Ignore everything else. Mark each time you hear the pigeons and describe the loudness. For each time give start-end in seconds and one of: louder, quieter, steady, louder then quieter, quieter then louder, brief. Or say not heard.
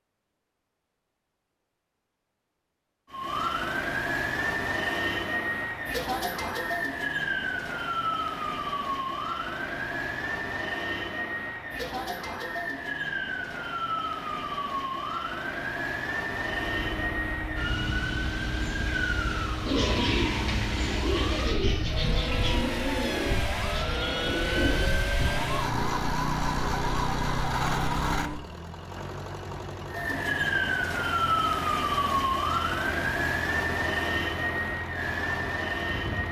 19.6-25.2 steady.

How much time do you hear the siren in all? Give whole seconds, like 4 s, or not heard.
32 s.